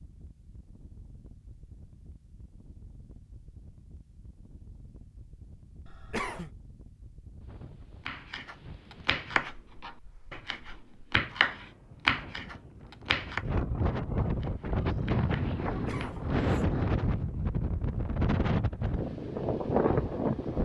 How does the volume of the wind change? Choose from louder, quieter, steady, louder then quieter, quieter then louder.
louder.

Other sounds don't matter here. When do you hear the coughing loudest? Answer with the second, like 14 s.
6 s.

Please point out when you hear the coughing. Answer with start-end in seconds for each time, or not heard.
5.8-6.5, 15.7-16.6.